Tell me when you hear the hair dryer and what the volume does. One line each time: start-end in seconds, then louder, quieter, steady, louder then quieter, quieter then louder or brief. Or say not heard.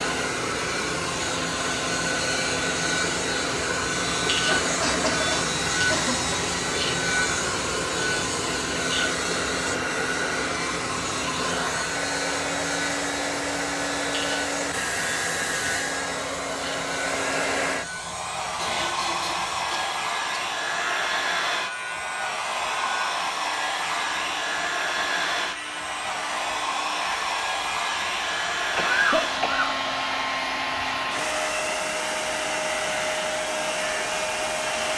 0.0-34.9 steady.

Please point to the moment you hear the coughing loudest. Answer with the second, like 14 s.
29 s.